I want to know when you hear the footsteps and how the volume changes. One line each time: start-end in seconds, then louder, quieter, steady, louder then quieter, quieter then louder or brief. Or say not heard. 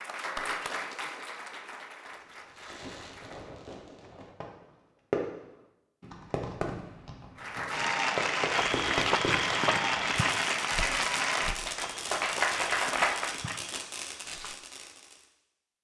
8.6-14.6 quieter.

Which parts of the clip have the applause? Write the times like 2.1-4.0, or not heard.
0.0-3.6, 7.3-13.4.